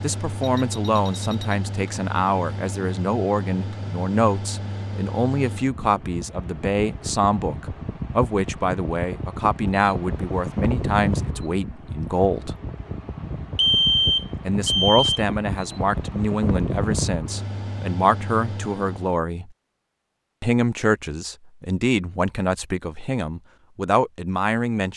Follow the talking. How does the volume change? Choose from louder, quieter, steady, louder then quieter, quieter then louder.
steady.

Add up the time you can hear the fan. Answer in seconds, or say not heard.
19 s.